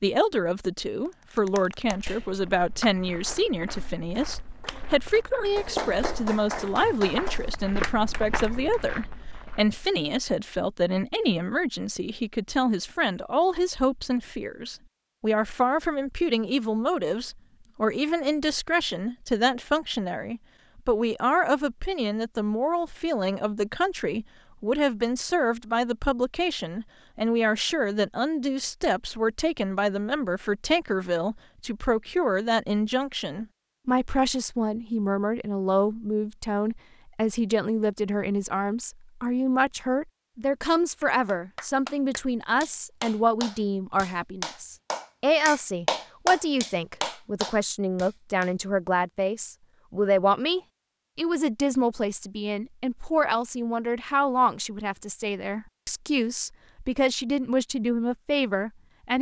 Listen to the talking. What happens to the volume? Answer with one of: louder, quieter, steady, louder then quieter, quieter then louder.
steady.